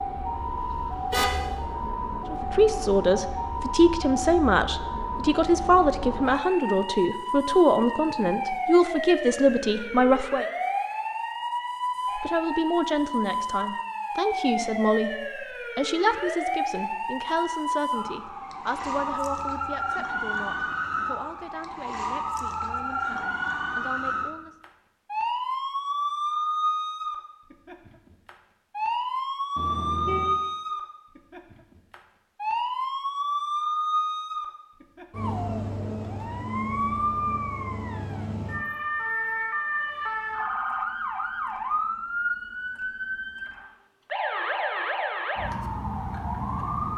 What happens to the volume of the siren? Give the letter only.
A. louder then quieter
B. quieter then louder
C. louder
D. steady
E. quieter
D.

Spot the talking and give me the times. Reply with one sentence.
The talking can be heard from 2.3 to 10.4 s and from 12.2 to 24.6 s.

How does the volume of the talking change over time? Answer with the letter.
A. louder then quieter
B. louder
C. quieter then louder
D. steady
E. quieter
E.